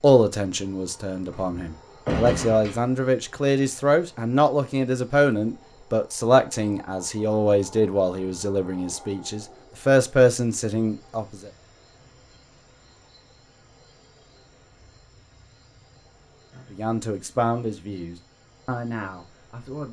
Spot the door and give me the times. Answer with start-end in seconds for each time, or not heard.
1.3-2.8.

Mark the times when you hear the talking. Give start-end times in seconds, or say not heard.
0.0-11.5, 16.7-19.8.